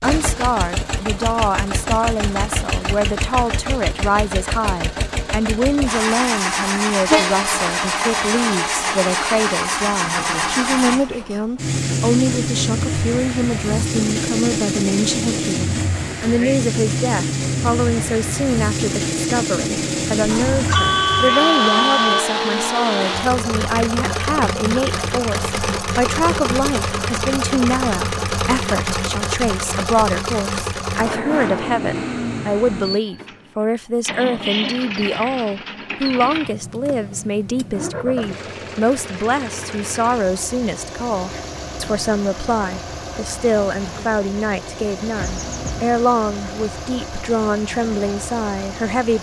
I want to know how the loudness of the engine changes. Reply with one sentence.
The loudness of the engine goes down.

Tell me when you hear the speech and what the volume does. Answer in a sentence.
You can hear the speech from 0.0 to 49.1 s, at a steady volume.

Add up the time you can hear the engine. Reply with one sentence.
The engine can be heard for 49 seconds in total.